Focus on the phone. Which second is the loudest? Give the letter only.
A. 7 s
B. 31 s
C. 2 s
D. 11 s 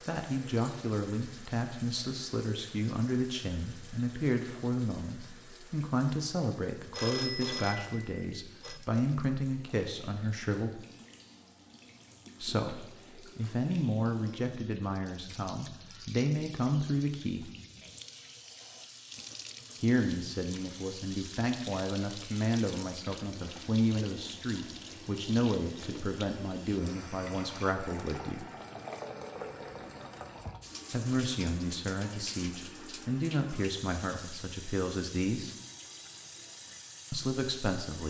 A.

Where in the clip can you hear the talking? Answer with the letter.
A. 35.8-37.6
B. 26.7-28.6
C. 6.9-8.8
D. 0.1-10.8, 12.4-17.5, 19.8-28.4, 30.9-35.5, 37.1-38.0
D.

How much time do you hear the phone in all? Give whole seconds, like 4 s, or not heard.
2 s.